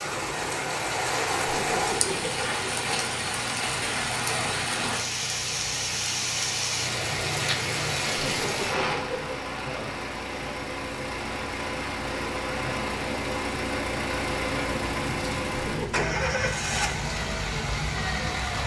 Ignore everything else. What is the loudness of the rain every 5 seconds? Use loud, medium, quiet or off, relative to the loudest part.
loud, loud, medium, medium.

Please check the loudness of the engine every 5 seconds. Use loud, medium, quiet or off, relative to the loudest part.
quiet, medium, loud, loud.